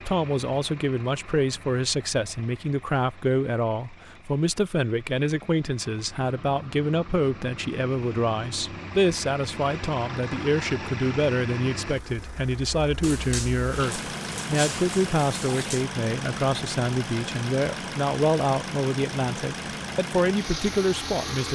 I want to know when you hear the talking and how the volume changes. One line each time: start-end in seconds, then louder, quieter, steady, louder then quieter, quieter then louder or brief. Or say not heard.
0.0-21.5 steady.